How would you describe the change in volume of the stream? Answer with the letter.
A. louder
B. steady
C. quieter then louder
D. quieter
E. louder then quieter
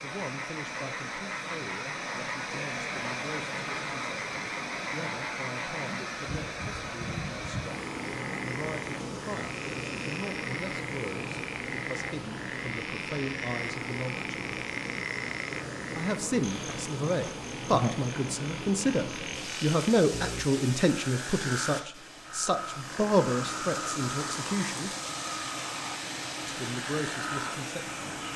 B.